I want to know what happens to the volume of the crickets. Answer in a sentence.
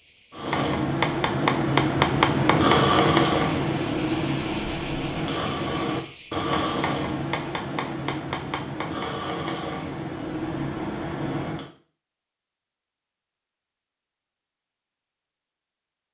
The volume of the crickets goes up, then down.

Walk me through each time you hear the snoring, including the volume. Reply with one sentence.
You can hear the snoring from 0.3 to 11.7 s, getting quieter.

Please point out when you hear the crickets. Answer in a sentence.
You can hear the crickets from 0.0 to 10.8 s.